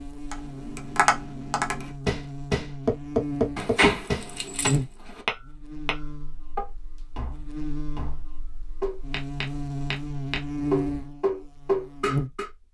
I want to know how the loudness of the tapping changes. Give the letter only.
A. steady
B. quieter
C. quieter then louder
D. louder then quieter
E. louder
C.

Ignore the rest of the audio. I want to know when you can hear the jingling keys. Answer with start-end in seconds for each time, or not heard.
3.5-5.2.